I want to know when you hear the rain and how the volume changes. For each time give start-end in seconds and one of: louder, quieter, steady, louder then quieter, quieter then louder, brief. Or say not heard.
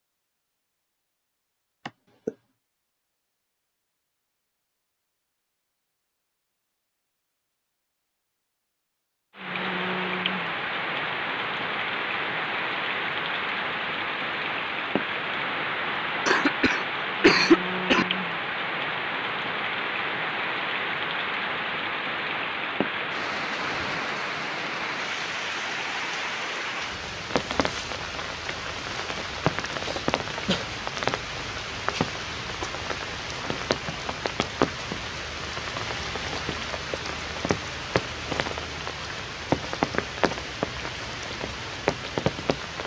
9.3-42.8 steady.